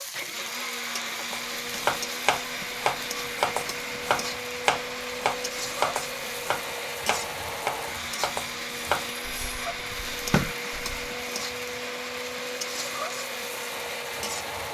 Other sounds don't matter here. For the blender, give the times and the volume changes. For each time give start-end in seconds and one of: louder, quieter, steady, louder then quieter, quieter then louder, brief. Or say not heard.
0.0-14.6 steady.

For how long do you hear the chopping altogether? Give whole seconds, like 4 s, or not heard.
10 s.